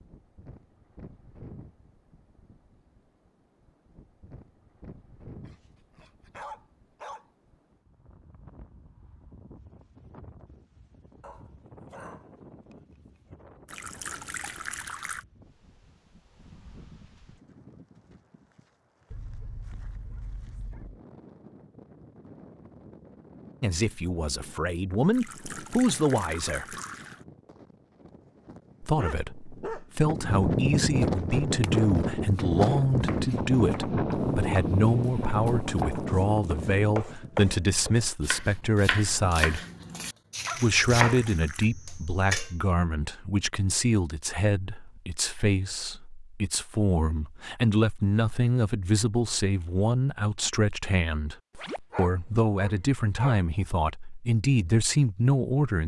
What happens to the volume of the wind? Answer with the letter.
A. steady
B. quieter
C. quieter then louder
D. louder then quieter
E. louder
E.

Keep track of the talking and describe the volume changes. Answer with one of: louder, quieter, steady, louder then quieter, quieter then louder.
steady.